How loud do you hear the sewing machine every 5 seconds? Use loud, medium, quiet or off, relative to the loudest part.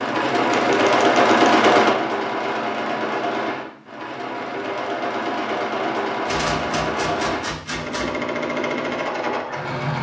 loud, medium.